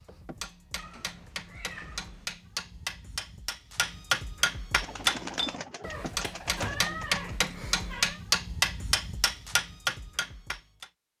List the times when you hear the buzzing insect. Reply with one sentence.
You can't hear the buzzing insect here.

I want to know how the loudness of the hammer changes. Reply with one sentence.
The loudness of the hammer goes up.